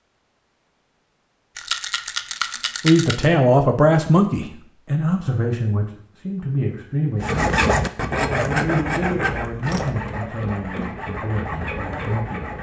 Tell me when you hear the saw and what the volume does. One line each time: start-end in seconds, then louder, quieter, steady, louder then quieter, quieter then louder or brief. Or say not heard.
7.2-12.5 quieter.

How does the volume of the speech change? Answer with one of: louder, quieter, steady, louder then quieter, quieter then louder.
quieter.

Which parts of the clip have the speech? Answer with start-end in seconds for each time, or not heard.
2.8-12.5.